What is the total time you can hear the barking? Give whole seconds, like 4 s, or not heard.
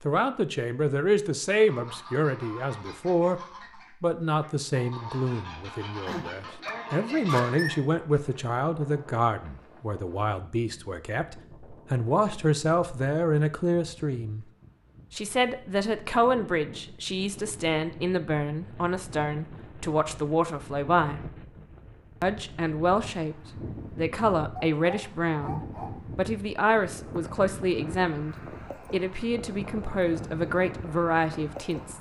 3 s.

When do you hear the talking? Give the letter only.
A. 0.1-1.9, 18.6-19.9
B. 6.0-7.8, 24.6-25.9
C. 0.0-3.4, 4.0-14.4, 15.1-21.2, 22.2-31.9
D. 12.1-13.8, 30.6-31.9
C.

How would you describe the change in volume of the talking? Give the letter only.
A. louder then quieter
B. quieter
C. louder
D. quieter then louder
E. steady
E.